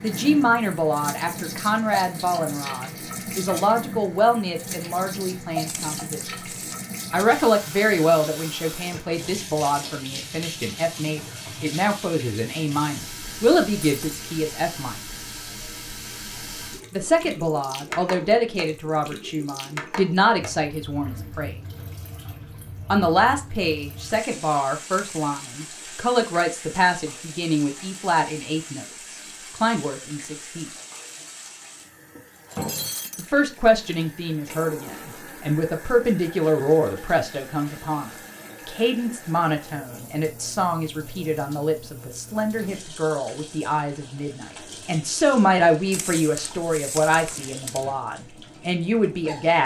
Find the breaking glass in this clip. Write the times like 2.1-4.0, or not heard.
13.8-14.2, 32.5-33.3.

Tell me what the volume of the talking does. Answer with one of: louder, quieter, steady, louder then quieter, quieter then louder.
steady.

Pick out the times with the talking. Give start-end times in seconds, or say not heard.
0.0-6.2, 7.1-14.9, 16.9-21.6, 22.9-30.6, 33.1-49.6.